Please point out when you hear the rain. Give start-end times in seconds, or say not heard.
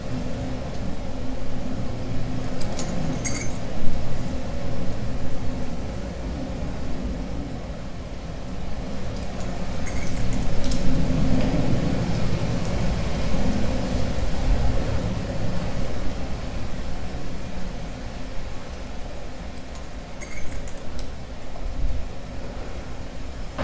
0.0-23.5.